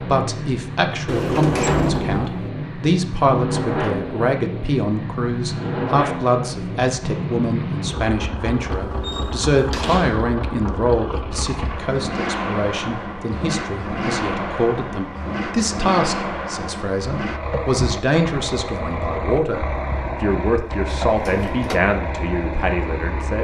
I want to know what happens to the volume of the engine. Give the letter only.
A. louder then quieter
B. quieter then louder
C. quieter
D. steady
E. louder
D.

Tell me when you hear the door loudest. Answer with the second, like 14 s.
2 s.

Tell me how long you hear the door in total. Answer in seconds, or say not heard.
4 s.